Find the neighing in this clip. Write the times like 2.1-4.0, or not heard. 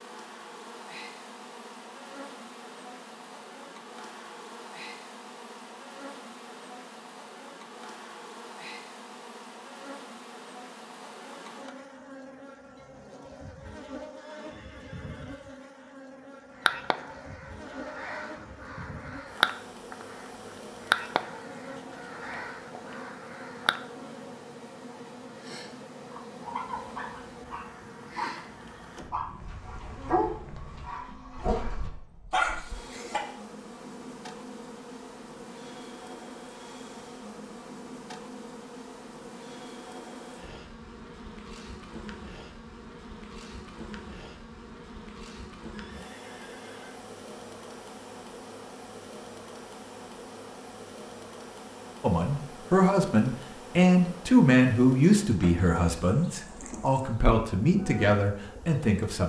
14.2-15.9, 45.7-47.0.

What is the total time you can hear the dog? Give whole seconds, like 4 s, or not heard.
7 s.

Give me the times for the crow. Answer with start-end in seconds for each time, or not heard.
16.6-20.2, 20.9-23.8.